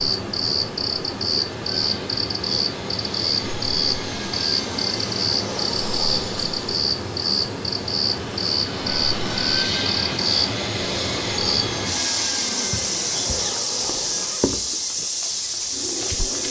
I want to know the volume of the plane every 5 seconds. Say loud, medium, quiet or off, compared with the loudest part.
medium, loud, loud, medium.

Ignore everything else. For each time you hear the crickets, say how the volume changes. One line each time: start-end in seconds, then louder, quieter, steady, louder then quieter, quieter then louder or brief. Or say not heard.
0.0-16.4 steady.